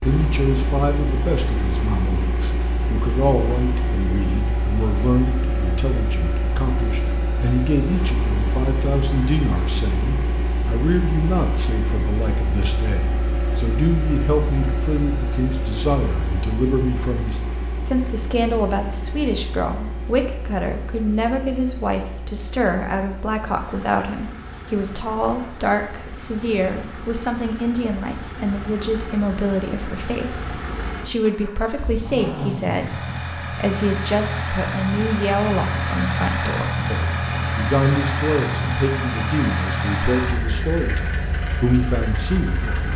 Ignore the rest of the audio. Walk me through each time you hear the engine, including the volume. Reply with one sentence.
The engine can be heard from 0.0 to 42.9 s, getting quieter then louder.